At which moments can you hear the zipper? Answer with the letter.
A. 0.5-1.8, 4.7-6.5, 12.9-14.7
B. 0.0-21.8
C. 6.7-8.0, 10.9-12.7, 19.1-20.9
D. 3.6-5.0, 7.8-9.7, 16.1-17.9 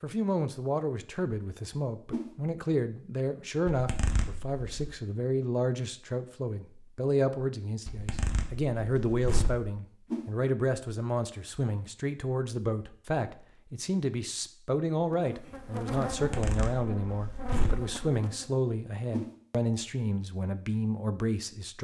D.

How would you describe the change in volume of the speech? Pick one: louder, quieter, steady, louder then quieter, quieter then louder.
steady.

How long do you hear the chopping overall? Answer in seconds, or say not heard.
not heard.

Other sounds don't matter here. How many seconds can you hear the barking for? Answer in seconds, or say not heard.
not heard.